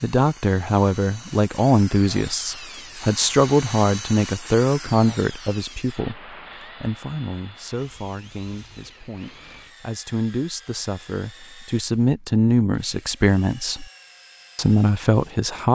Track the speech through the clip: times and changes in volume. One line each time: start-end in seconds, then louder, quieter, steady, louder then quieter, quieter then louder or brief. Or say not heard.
0.0-13.8 quieter then louder
14.6-15.7 brief.